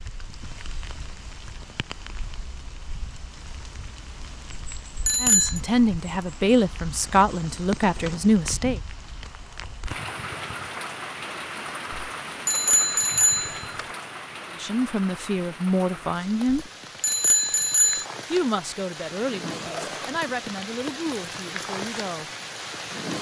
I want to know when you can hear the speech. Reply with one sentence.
The speech can be heard from 5.2 to 8.8 s, from 14.6 to 16.6 s and from 18.3 to 22.3 s.